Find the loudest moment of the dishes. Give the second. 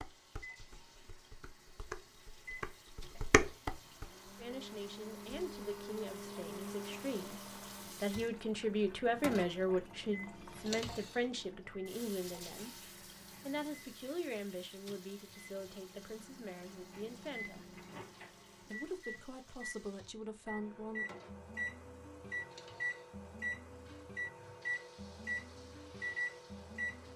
4 s.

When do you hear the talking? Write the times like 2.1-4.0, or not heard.
4.3-7.4, 8.0-12.8, 13.4-17.6, 18.6-21.1.